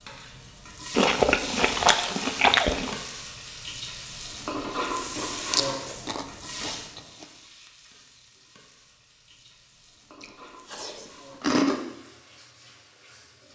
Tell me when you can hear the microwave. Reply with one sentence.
The microwave can't be heard in this clip.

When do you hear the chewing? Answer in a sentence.
You can hear the chewing from 0.9 to 3.0 s, from 4.9 to 7.2 s and from 10.2 to 11.8 s.